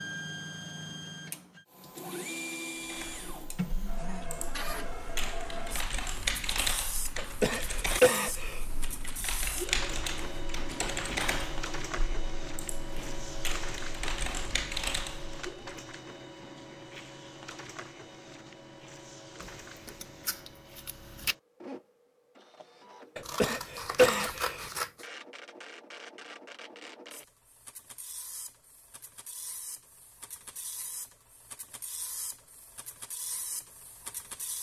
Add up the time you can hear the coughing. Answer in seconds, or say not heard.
3 s.